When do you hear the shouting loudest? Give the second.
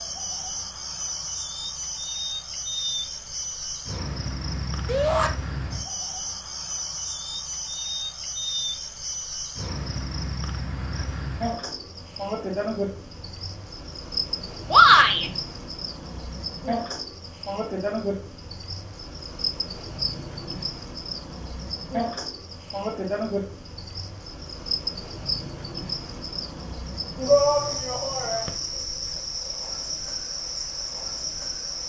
15 s.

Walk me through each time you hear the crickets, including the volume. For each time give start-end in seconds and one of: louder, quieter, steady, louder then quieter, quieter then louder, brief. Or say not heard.
0.0-31.8 steady.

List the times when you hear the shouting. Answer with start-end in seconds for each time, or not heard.
4.8-5.3, 14.7-15.2, 27.2-28.5.